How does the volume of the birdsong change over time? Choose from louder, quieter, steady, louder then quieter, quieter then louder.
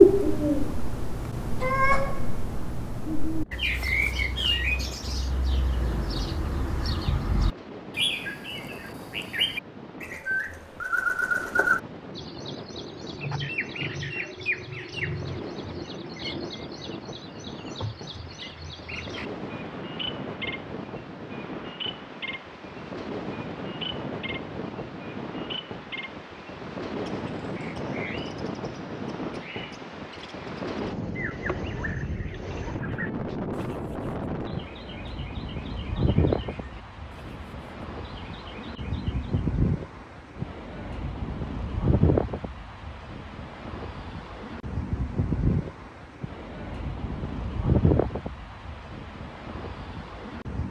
quieter.